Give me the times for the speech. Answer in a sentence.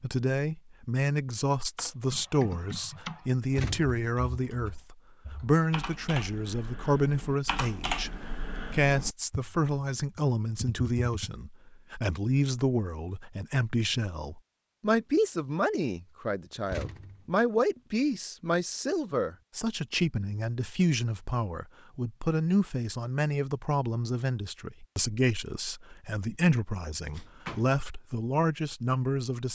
You can hear the speech from 0.0 to 29.5 s.